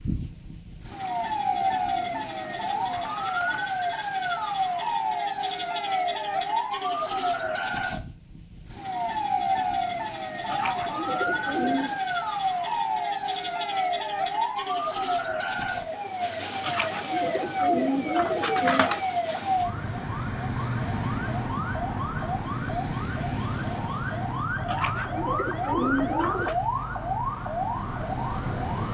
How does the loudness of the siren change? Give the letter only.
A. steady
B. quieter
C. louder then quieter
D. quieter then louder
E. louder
A.